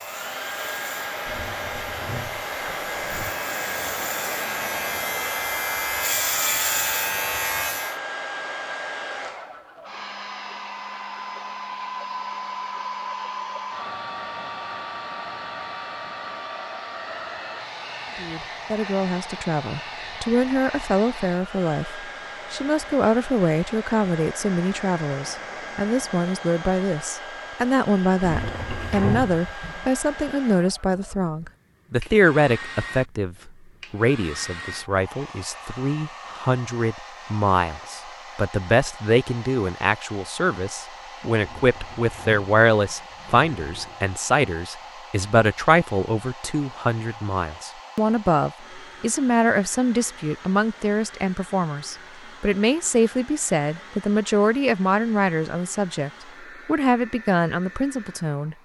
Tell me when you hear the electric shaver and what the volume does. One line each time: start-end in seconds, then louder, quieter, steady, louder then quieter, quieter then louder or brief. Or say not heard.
0.0-8.0 louder.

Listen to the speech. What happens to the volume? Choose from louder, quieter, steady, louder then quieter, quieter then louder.
steady.